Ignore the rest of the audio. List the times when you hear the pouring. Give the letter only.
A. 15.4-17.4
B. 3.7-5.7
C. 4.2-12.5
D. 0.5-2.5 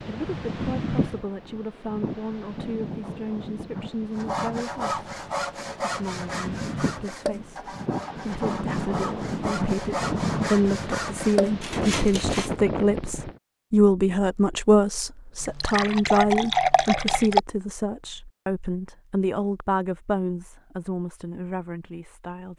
A.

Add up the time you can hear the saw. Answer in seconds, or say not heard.
8 s.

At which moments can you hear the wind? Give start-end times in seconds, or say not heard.
0.0-13.4.